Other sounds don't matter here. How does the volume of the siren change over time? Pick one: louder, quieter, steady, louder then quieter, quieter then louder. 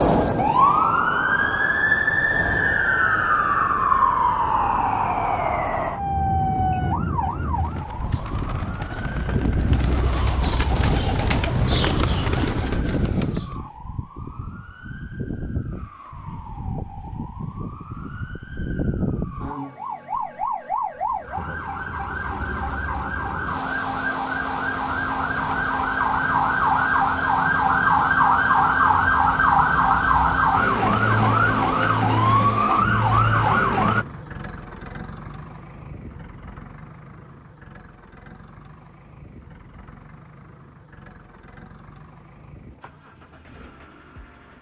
quieter then louder.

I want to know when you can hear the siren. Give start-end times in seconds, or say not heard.
0.0-34.0.